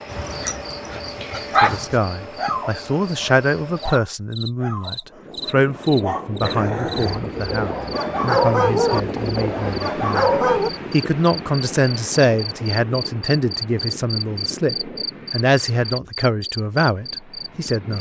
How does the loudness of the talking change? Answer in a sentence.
The volume of the talking stays about the same.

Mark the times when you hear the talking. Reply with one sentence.
The talking can be heard from 1.6 to 17.9 s.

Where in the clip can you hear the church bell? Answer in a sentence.
You can't hear the church bell here.